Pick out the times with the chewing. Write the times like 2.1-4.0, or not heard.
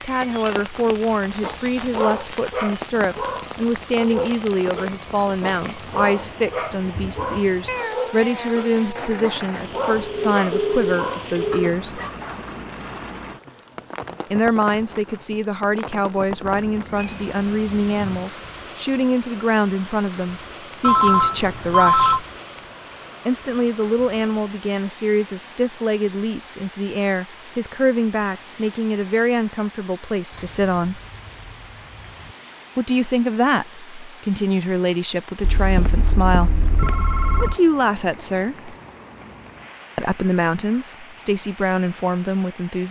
not heard.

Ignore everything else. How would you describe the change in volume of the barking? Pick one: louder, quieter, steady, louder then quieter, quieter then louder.
steady.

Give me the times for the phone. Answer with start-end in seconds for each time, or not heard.
9.9-11.7, 20.8-22.2, 35.4-37.5.